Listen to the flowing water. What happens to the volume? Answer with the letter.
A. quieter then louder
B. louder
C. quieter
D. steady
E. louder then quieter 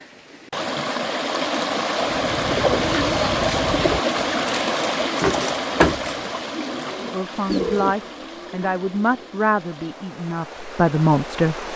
C.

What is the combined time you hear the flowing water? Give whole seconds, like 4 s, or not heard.
12 s.